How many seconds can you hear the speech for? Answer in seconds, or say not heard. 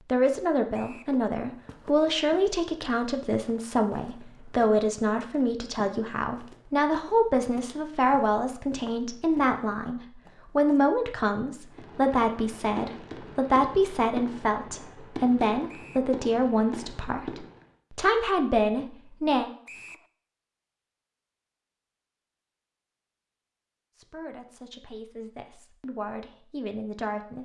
23 s.